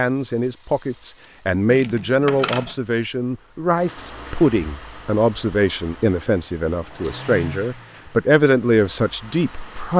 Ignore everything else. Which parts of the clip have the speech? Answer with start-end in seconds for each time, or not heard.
0.0-9.9.